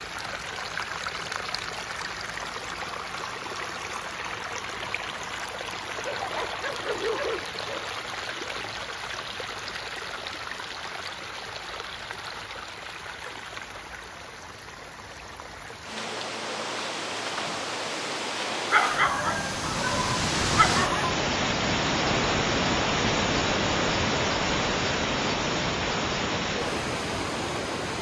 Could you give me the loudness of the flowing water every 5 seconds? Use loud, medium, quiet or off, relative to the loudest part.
medium, medium, quiet, medium, loud, loud.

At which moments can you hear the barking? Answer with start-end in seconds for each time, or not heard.
6.0-7.8, 18.7-21.1.